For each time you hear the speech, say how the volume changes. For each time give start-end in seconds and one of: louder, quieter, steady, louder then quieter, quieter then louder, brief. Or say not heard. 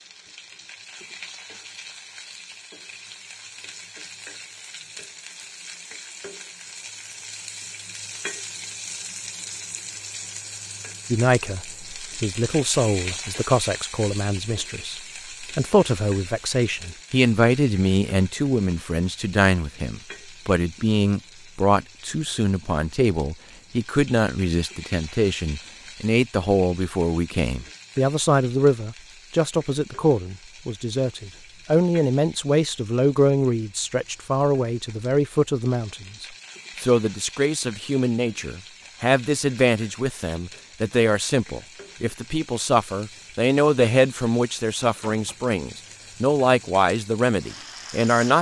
11.1-48.3 steady.